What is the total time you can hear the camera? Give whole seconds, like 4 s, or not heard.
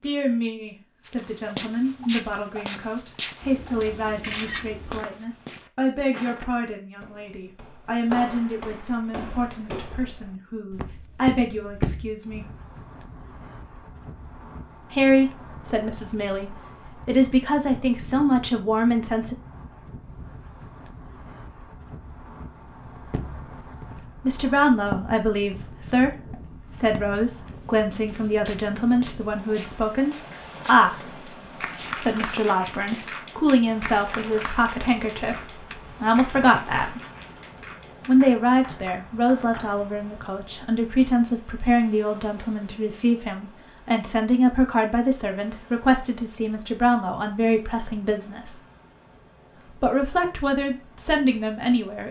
2 s.